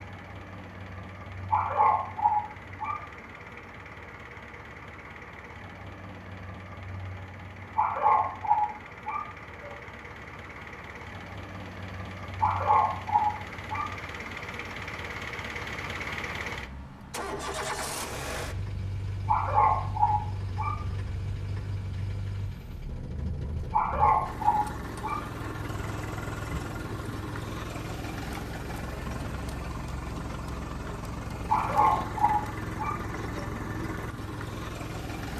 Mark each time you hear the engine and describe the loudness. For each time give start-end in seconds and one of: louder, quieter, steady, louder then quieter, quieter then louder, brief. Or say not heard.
0.0-35.3 louder.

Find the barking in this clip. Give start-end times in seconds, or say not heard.
1.5-3.0, 7.8-9.7, 12.4-13.9, 19.2-20.8, 23.7-25.2, 31.4-33.5.